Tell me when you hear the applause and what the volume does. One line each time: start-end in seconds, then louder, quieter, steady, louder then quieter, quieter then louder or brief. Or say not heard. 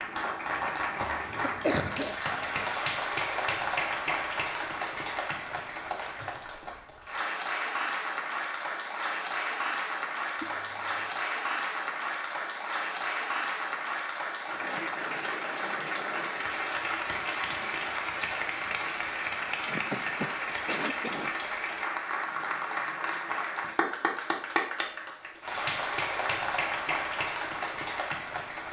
0.0-28.6 steady.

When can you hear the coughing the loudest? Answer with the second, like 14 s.
2 s.